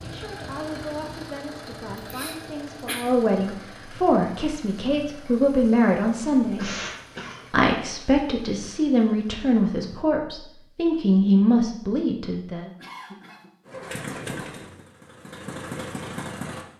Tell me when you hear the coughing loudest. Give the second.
7 s.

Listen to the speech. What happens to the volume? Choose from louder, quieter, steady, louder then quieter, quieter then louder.
louder.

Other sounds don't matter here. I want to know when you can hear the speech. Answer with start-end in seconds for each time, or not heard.
0.0-6.7, 7.5-12.7.